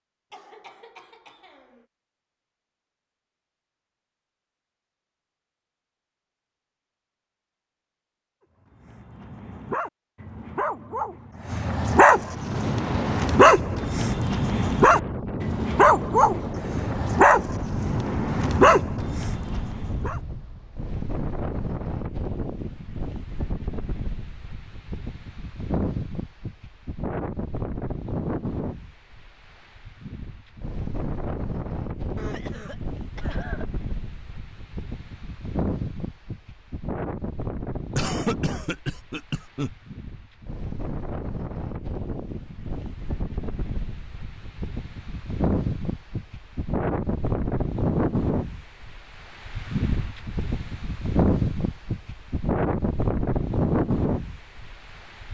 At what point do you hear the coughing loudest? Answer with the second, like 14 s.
38 s.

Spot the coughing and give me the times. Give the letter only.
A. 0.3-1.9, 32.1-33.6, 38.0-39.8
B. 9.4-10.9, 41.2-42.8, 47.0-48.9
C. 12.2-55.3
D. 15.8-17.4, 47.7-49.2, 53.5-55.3
A.